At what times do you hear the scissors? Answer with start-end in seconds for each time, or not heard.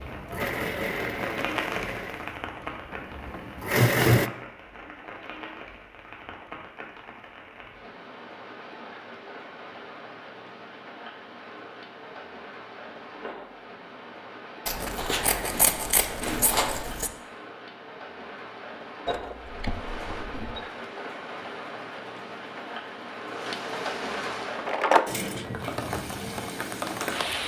14.7-17.1.